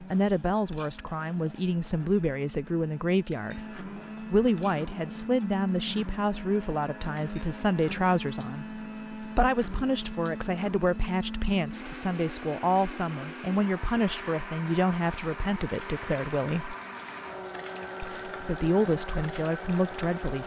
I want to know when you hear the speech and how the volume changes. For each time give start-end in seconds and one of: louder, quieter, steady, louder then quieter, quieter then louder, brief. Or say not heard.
0.0-16.8 steady
18.0-20.4 brief.